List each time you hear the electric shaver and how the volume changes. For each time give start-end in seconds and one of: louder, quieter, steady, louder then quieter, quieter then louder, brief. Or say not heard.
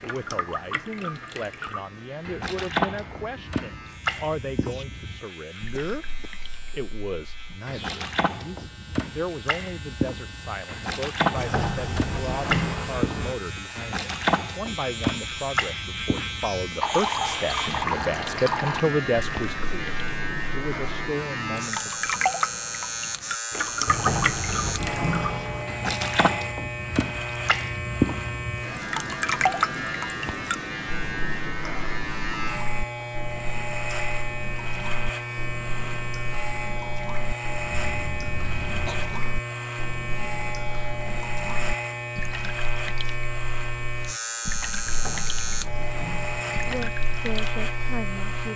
0.0-48.5 louder.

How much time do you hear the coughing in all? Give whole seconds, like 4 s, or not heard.
2 s.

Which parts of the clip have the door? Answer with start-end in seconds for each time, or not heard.
11.3-13.3, 23.9-25.7, 44.9-46.8.